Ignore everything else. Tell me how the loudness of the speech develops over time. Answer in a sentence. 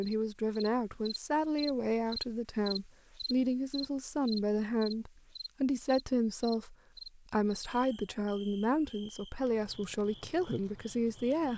The loudness of the speech stays about the same.